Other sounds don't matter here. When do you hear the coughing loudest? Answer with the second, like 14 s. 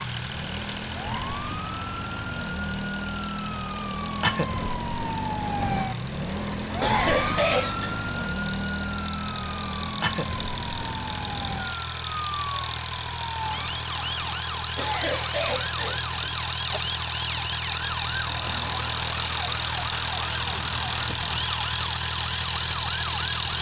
7 s.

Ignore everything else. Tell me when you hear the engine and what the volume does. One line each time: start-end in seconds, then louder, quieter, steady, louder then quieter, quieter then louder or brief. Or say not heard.
0.0-23.5 louder.